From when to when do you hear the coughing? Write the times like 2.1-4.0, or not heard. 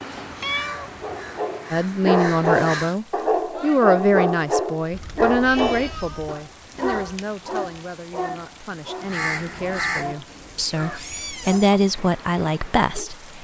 not heard.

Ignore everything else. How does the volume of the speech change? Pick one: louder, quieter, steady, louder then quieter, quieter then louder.
quieter then louder.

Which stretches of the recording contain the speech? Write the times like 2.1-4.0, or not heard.
1.7-13.2.